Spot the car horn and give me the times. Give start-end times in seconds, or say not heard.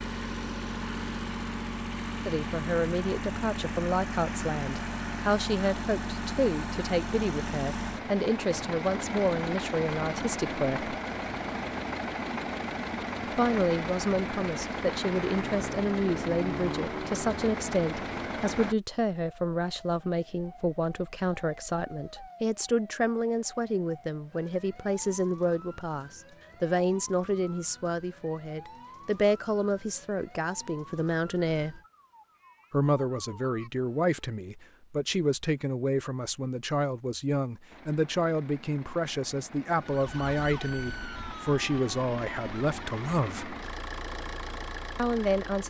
not heard.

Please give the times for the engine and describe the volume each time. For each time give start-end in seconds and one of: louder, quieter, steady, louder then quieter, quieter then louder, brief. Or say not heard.
0.0-18.8 steady
37.7-45.6 louder.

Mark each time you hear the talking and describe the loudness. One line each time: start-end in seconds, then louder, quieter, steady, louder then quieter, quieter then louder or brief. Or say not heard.
2.2-10.9 steady
13.3-31.8 steady
32.7-43.5 steady
45.0-45.6 brief.